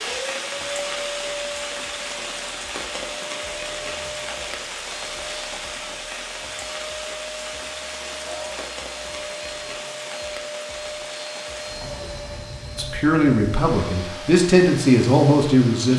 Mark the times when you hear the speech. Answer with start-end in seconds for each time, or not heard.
12.8-15.9.